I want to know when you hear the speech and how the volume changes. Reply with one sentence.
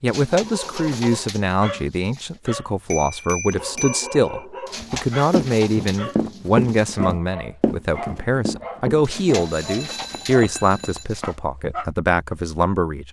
You can hear the speech from 0.0 to 13.0 s, at a steady volume.